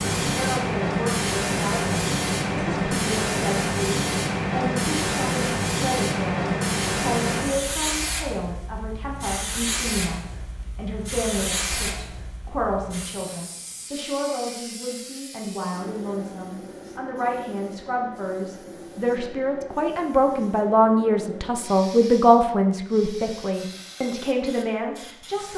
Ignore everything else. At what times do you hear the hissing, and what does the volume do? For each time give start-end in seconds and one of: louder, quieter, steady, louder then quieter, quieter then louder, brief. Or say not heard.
0.0-25.5 quieter.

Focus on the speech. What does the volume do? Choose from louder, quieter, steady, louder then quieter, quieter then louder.
louder.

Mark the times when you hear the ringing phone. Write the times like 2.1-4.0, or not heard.
not heard.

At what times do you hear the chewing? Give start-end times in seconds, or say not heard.
not heard.